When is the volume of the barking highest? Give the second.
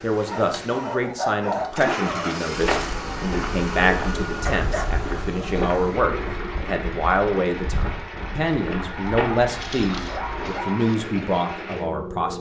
1 s.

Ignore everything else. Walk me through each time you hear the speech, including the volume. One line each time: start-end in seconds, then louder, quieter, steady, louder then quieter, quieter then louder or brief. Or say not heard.
0.0-12.3 steady.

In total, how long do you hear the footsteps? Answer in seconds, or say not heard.
8 s.